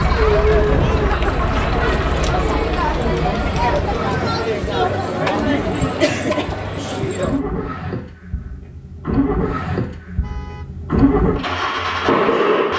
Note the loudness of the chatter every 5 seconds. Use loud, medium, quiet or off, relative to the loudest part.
loud, loud, off.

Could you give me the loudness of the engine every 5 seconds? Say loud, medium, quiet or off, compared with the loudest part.
medium, medium, loud.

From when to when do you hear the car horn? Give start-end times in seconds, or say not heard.
10.2-10.7.